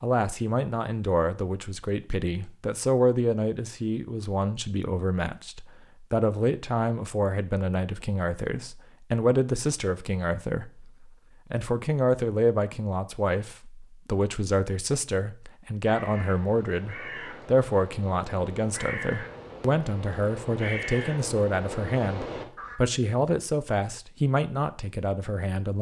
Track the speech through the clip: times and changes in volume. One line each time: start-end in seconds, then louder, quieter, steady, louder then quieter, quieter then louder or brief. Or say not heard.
0.0-25.7 steady.